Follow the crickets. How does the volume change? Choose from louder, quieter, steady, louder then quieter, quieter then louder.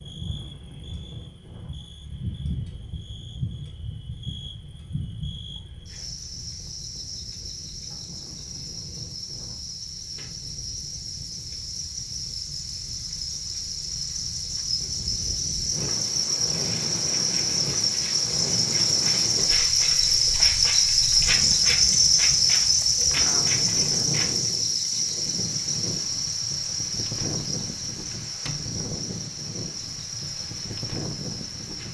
louder then quieter.